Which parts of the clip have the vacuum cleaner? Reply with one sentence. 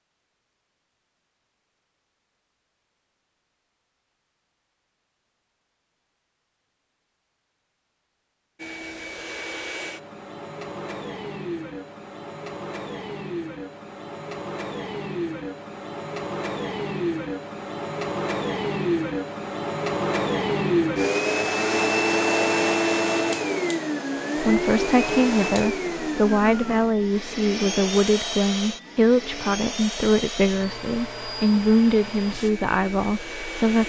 The vacuum cleaner can be heard from 8.6 to 33.8 s.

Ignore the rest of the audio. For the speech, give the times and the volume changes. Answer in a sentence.
You can hear the speech from 24.4 to 33.8 s, at a steady volume.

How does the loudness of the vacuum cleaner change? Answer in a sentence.
The loudness of the vacuum cleaner goes up, then down.